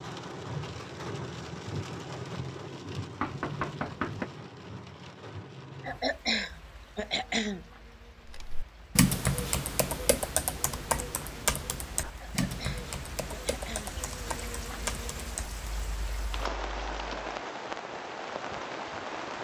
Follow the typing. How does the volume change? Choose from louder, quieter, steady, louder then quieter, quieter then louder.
quieter.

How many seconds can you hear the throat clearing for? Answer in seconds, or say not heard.
4 s.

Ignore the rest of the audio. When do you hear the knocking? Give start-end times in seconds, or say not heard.
3.2-4.3.